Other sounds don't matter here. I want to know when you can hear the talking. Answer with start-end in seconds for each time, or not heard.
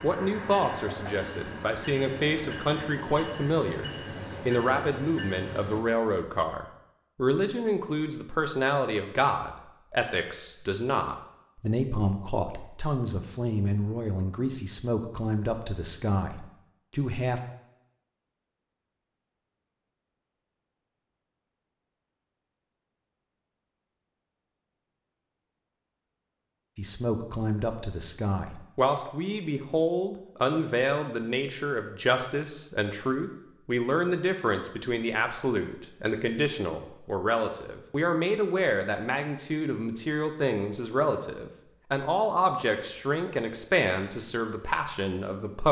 0.0-17.4, 26.8-45.6.